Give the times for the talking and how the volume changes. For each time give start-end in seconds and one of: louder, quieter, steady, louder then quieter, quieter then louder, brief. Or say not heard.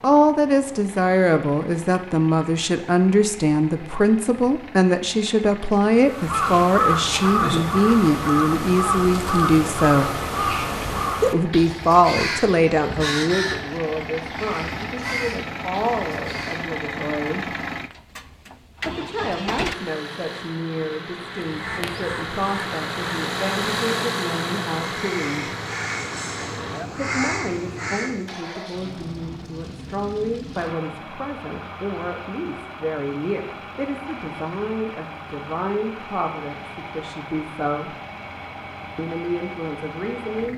0.0-10.2 steady
11.2-17.5 quieter
18.8-25.5 steady
26.9-38.0 steady
39.0-40.5 brief.